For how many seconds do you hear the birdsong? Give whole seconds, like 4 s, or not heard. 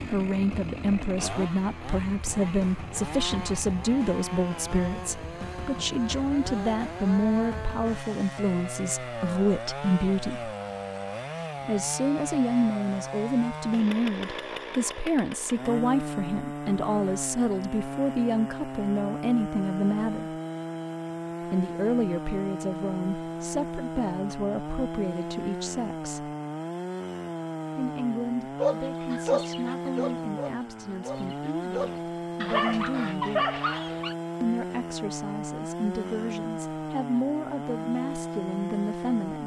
not heard.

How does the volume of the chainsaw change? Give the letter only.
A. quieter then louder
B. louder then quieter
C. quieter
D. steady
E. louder
D.